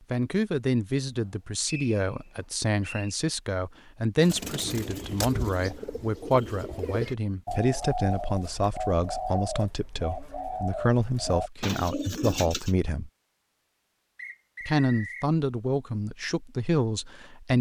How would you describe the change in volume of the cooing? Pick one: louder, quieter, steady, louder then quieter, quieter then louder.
steady.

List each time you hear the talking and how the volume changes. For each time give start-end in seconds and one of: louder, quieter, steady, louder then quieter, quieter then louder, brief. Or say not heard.
0.1-13.1 steady
14.7-17.5 brief.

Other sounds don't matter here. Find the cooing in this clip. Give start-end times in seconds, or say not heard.
4.2-12.7.